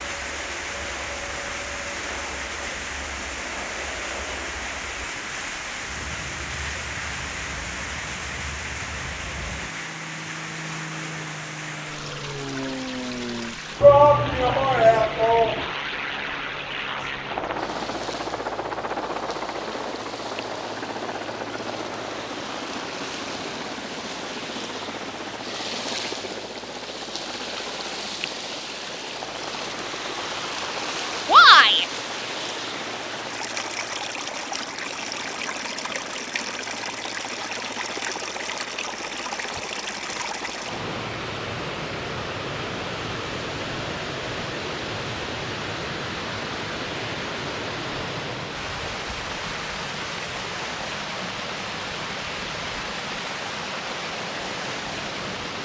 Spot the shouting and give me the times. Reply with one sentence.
The shouting can be heard from 13.8 to 15.7 s and from 31.2 to 31.9 s.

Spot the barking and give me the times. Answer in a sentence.
The barking can't be heard in this clip.